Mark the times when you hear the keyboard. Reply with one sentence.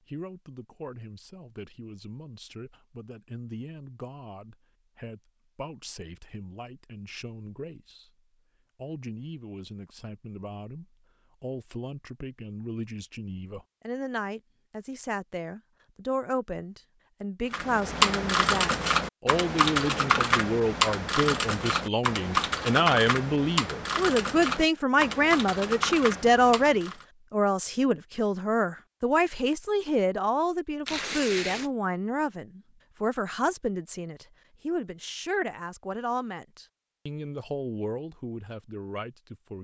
The keyboard can be heard from 17.5 to 27.1 s.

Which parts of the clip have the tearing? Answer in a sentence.
You can hear the tearing from 30.9 to 31.7 s.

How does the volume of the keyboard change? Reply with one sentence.
The loudness of the keyboard goes down.